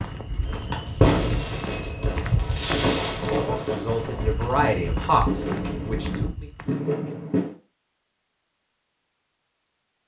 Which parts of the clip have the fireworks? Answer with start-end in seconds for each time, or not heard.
0.5-7.5.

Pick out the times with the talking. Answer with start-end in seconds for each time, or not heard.
3.3-6.5.